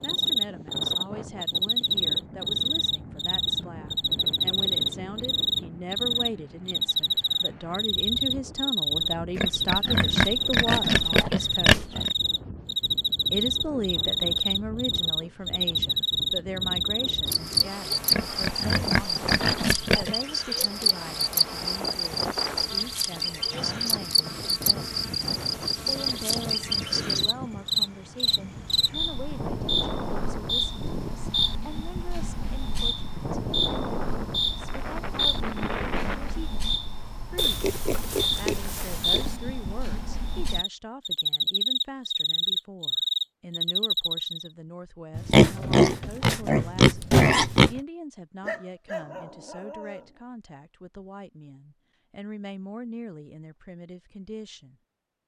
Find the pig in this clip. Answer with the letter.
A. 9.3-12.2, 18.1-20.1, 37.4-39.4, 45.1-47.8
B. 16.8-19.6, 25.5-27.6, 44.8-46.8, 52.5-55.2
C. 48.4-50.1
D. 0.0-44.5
A.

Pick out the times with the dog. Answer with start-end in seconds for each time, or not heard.
48.4-50.1.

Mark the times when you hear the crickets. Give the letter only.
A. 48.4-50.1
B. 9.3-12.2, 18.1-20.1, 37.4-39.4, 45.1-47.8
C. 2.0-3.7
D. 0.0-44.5
D.